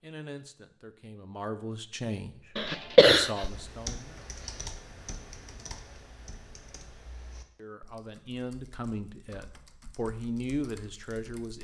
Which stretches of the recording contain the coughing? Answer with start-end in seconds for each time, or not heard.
2.5-3.3.